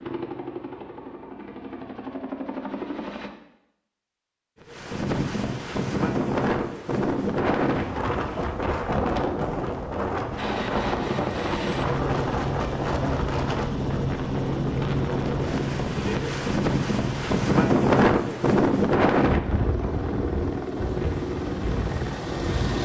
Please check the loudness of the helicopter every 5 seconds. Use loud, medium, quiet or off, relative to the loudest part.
medium, off, loud, loud, loud.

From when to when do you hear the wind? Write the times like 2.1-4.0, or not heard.
4.6-22.8.